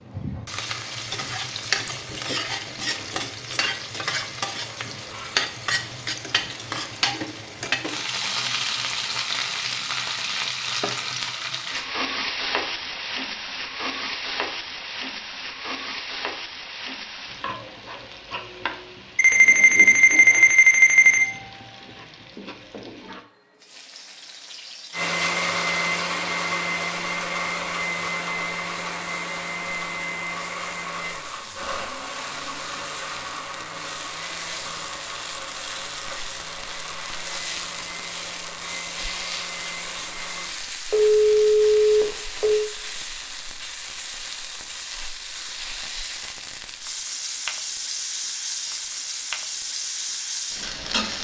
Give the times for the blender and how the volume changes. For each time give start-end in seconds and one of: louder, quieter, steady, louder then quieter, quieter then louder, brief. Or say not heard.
24.9-40.5 quieter.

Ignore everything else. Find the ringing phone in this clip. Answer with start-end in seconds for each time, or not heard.
19.1-21.2, 40.9-42.7.